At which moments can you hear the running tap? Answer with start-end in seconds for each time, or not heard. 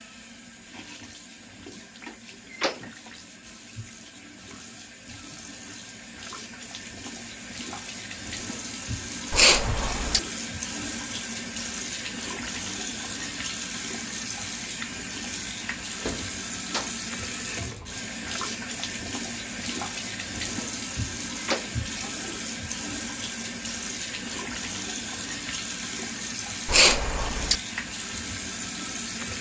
0.0-29.3.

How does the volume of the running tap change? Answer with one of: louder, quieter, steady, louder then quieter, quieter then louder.
louder.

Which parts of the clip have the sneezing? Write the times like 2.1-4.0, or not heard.
9.3-10.2, 26.6-27.6.